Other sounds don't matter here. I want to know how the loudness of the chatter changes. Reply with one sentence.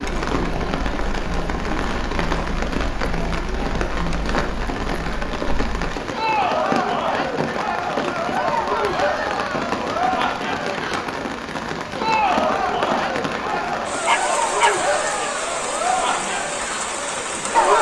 The volume of the chatter goes up.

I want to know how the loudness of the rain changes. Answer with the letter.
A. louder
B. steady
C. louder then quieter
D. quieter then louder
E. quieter
B.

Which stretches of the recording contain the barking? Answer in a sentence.
The barking can be heard from 14.1 to 15.4 s.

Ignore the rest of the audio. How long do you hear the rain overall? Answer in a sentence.
The rain can be heard for 18 seconds in total.